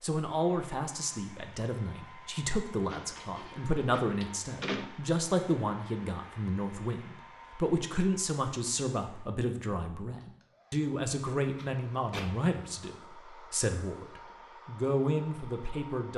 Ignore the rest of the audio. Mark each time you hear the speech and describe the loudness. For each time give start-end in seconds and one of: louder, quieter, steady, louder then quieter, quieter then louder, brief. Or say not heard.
0.0-16.1 steady.